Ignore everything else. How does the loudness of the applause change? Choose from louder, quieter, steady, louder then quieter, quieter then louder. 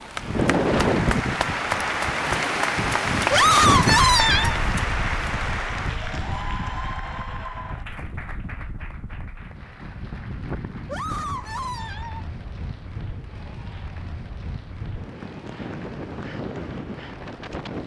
quieter.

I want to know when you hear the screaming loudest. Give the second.
4 s.